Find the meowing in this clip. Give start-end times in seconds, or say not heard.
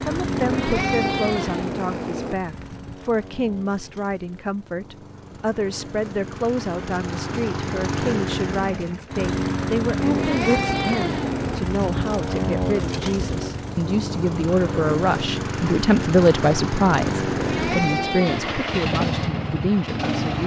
0.3-2.4, 9.9-11.7, 17.2-18.6.